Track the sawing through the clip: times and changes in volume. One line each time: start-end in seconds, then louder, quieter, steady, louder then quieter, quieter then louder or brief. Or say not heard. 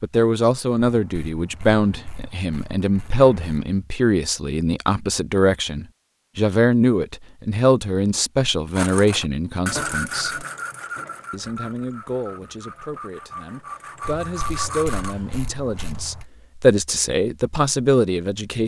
8.8-15.2 quieter then louder.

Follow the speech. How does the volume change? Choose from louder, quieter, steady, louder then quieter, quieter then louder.
quieter then louder.